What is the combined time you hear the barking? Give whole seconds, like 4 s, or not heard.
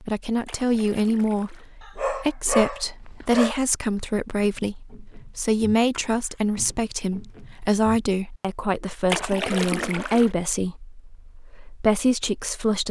2 s.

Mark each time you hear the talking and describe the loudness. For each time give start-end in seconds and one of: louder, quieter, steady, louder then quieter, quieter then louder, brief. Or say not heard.
0.0-12.8 steady.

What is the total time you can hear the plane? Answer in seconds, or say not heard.
not heard.